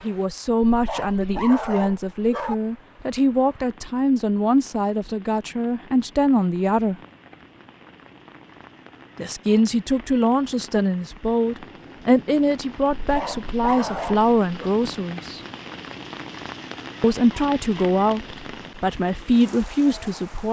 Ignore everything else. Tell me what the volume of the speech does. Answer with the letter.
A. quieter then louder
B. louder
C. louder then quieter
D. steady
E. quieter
D.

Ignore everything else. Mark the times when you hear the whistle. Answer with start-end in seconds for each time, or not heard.
not heard.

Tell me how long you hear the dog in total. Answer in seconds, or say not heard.
4 s.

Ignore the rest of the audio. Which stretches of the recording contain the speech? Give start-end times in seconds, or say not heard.
0.0-7.0, 9.2-15.4, 17.0-20.4.